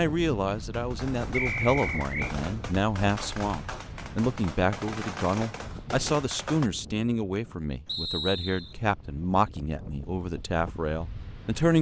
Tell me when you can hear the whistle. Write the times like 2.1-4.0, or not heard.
1.3-2.4, 7.8-8.8.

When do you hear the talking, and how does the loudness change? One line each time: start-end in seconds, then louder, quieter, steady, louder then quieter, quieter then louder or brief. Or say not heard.
0.0-11.7 steady.